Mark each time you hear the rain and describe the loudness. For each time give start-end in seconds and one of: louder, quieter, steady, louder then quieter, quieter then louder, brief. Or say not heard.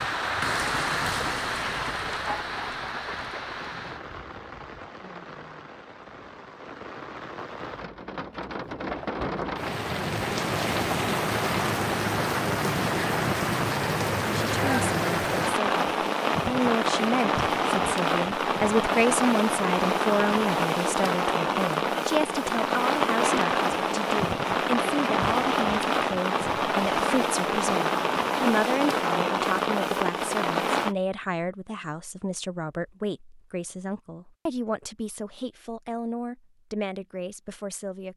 0.0-30.9 louder.